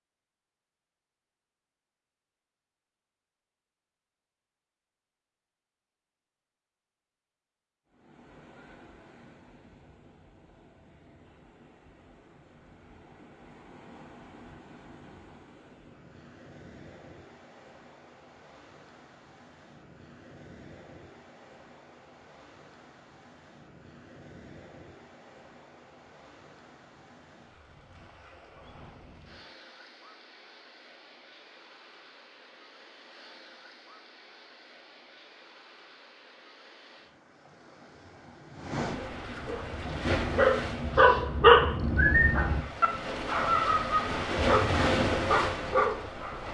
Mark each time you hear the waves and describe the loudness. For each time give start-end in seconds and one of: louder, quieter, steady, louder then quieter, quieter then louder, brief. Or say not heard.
7.9-46.4 louder.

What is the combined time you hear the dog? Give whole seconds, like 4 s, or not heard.
7 s.